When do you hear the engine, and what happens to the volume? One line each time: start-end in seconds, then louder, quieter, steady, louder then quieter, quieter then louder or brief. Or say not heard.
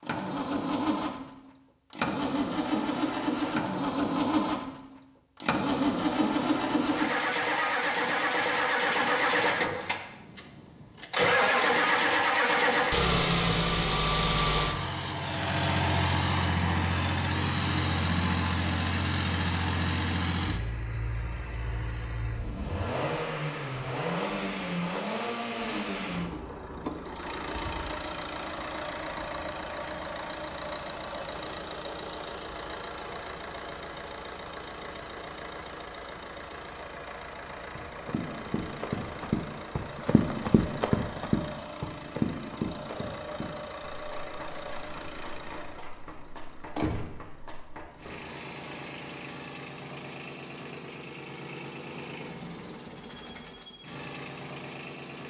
0.0-55.2 quieter.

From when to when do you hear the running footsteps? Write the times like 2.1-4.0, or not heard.
37.7-48.1.